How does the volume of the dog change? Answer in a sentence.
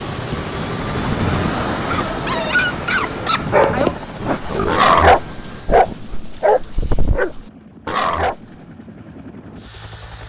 The loudness of the dog goes up, then down.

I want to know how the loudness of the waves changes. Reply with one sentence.
The volume of the waves goes down.